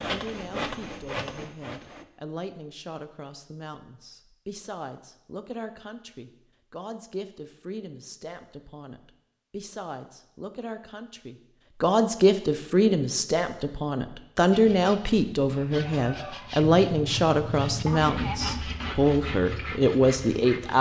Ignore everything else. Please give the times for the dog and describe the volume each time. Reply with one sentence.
You can't hear the dog here.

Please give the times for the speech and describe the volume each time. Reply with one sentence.
You can hear the speech from 0.0 to 20.7 s, getting louder.